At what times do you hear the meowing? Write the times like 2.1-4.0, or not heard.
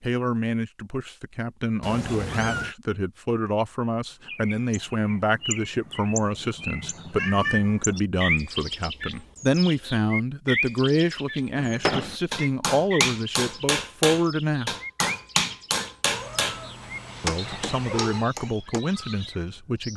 1.8-2.8, 7.2-7.8, 16.1-18.3.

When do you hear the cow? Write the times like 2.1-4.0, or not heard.
not heard.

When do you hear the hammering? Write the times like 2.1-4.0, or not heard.
11.6-16.6, 17.2-18.8.